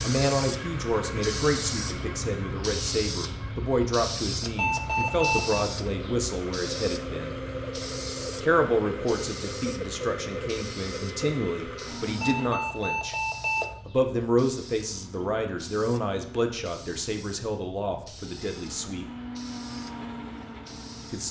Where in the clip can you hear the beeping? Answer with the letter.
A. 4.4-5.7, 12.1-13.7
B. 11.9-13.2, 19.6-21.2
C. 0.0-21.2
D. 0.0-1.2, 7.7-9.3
A.